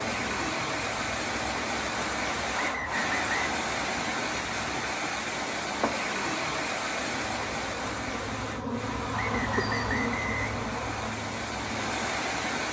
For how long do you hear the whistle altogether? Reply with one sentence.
You can hear the whistle for 3 seconds altogether.